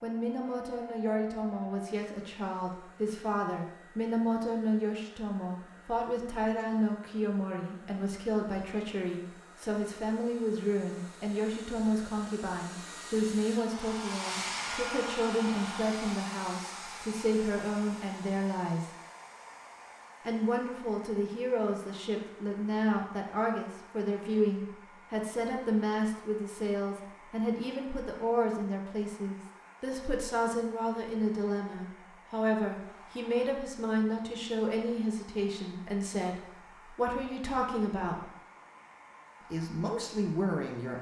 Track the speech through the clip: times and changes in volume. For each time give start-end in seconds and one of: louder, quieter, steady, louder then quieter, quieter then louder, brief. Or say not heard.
0.0-18.9 steady
20.2-38.2 steady
39.5-40.9 brief.